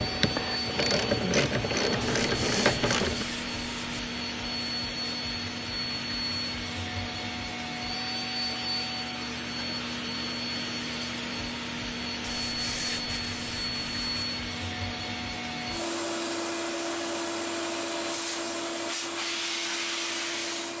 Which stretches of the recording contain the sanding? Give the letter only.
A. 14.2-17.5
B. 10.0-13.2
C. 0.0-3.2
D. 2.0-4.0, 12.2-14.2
D.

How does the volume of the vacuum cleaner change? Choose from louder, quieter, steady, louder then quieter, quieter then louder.
steady.